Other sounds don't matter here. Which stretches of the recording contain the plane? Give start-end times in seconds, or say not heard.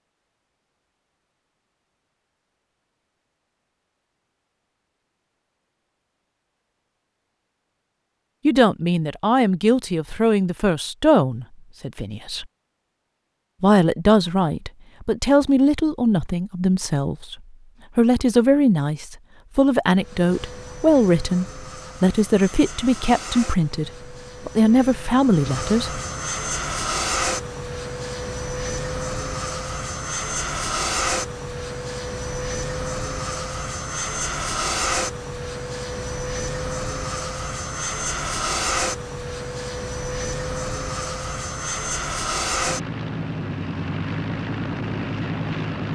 19.9-45.9.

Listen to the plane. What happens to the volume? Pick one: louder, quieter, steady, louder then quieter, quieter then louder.
louder.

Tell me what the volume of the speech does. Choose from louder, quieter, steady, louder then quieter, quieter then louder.
steady.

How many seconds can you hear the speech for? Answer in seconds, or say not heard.
16 s.